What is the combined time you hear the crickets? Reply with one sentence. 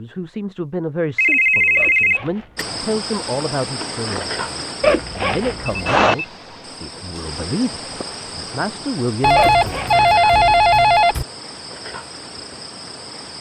You can hear the crickets for 11 seconds altogether.